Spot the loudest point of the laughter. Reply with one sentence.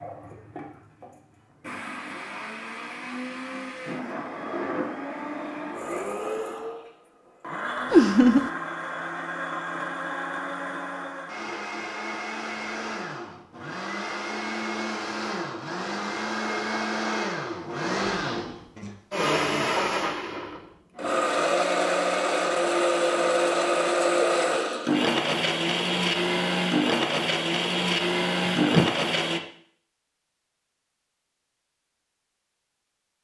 The volume of the laughter peaks at 8 seconds.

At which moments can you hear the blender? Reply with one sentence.
You can hear the blender from 0.0 to 29.4 s.